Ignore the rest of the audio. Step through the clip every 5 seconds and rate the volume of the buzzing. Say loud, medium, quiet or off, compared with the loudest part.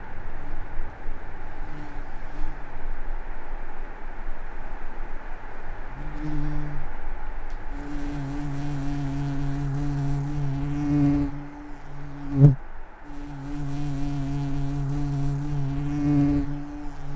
quiet, medium, loud, loud.